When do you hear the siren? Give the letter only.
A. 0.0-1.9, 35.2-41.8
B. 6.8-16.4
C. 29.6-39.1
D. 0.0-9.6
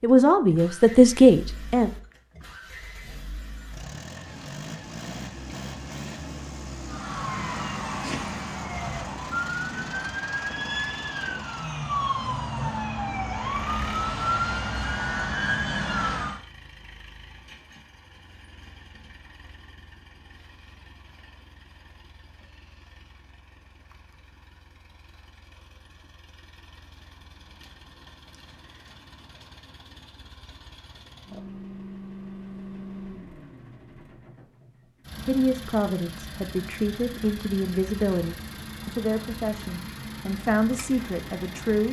B.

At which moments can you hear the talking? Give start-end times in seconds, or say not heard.
0.0-1.9, 35.2-41.8.